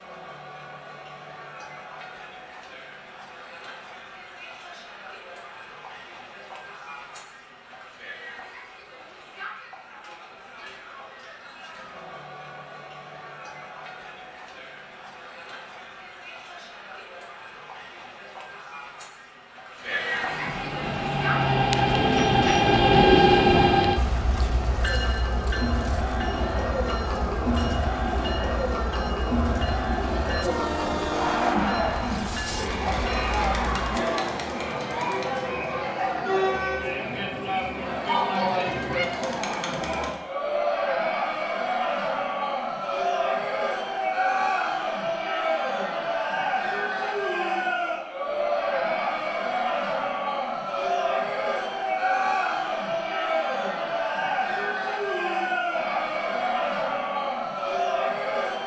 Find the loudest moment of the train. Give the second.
23 s.